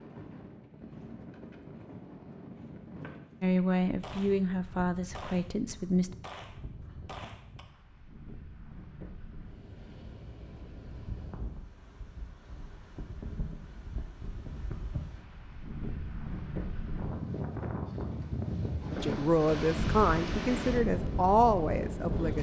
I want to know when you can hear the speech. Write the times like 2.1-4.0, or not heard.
3.4-6.2, 19.0-22.3.